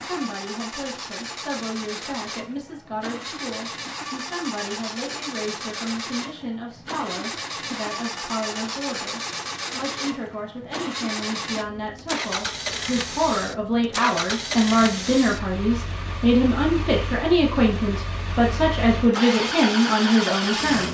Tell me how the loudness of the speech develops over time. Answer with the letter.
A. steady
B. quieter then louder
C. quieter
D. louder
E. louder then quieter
D.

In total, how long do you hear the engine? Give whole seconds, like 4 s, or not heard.
21 s.